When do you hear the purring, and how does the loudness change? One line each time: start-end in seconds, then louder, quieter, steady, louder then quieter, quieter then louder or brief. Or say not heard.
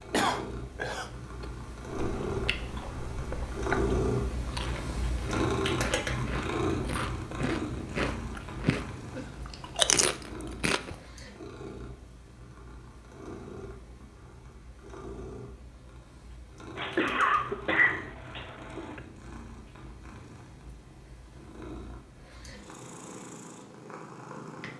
0.0-24.7 quieter.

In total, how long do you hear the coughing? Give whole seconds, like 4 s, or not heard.
4 s.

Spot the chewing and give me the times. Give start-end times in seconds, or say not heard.
2.0-8.8, 9.4-10.9.